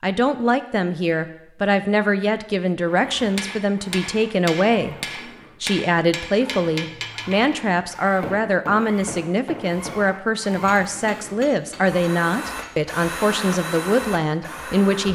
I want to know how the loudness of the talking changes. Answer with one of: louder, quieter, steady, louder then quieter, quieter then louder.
steady.